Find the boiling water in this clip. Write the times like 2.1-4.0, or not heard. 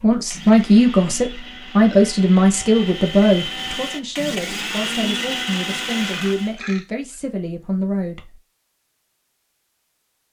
not heard.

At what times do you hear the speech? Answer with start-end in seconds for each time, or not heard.
0.0-8.4.